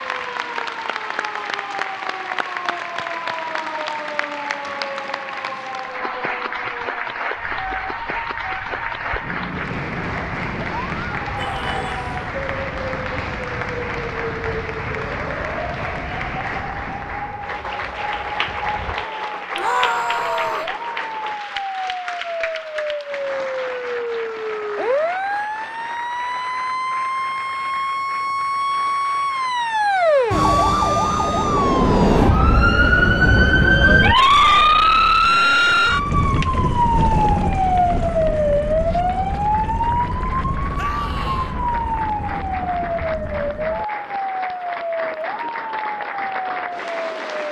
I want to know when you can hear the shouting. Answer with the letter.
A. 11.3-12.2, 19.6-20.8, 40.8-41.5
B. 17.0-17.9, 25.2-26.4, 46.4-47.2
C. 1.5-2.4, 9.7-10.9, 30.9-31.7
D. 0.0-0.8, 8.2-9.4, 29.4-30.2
A.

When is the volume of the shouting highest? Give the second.
20 s.